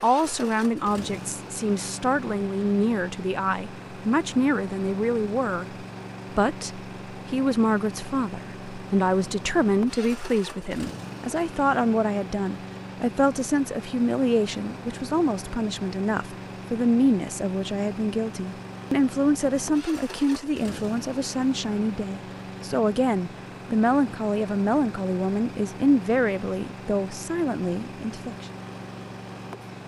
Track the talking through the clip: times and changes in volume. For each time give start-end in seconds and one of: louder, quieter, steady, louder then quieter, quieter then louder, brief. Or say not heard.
0.0-28.4 steady.